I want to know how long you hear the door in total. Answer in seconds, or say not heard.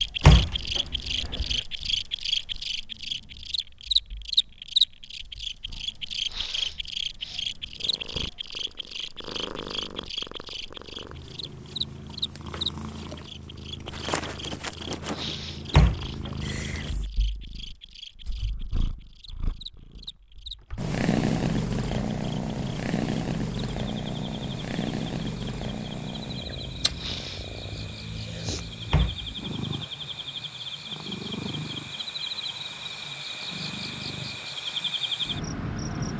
3 s.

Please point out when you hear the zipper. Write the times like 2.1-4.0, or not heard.
not heard.